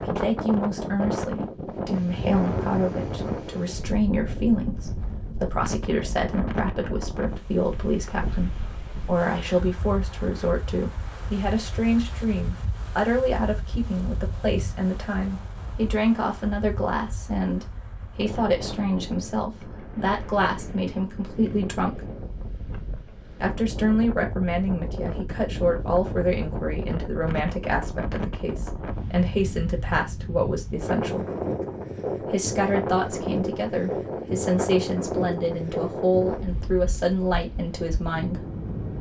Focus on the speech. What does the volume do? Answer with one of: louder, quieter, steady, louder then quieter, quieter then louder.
steady.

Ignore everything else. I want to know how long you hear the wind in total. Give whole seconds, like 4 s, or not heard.
39 s.